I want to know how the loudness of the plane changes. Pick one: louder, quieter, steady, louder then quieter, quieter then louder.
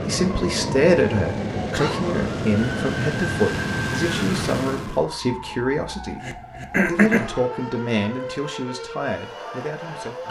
steady.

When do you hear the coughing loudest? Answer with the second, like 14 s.
7 s.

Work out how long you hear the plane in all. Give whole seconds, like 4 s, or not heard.
5 s.